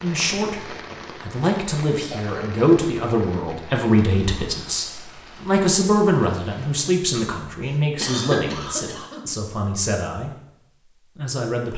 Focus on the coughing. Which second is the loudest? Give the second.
8 s.